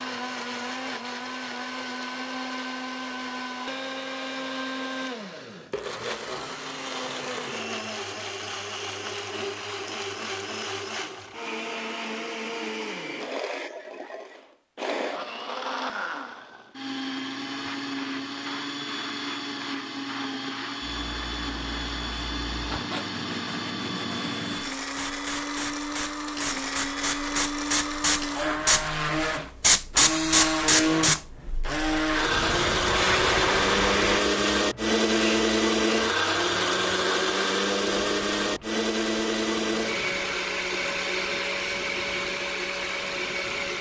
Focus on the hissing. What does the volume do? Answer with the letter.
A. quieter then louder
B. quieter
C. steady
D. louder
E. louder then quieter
E.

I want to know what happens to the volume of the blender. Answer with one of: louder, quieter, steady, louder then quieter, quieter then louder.
louder.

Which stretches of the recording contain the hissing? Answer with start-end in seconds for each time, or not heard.
17.6-43.7.